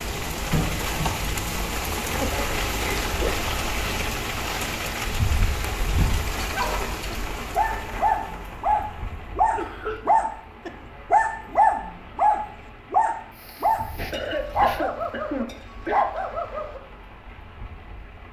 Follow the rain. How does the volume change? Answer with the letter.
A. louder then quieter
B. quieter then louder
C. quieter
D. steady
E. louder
C.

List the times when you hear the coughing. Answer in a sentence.
The coughing can be heard from 2.1 to 3.4 s, from 9.5 to 10.2 s and from 13.3 to 16.1 s.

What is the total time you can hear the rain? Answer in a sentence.
The rain can be heard for 18 seconds in total.